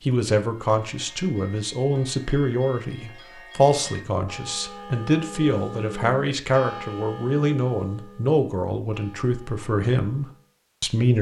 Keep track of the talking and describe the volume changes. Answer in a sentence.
The volume of the talking stays about the same.